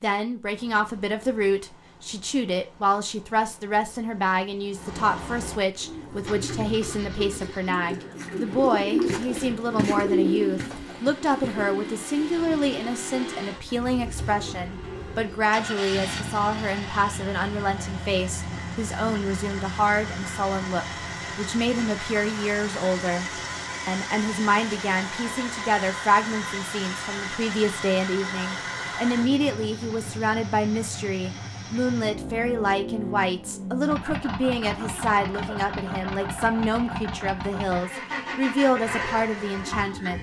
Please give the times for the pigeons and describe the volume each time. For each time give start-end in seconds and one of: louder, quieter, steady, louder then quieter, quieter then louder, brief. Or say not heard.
5.8-15.6 louder then quieter.